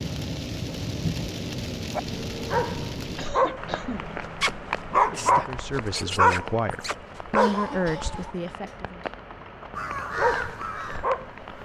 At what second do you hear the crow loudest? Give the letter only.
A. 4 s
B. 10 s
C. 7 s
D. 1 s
B.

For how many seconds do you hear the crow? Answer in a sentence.
The crow can be heard for 2 seconds in total.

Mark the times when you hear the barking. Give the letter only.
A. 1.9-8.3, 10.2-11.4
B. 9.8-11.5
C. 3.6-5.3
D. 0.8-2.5
A.